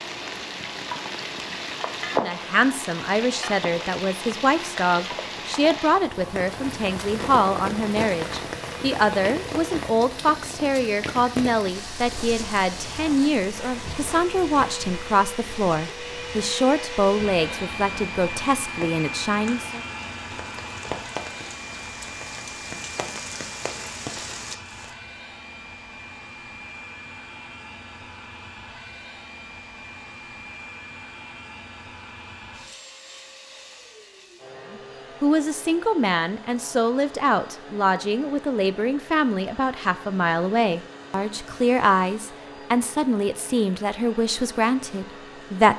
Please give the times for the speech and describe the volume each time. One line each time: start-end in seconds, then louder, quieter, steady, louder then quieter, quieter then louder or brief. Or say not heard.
2.1-19.8 steady
34.7-45.7 steady.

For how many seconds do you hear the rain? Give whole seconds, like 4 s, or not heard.
25 s.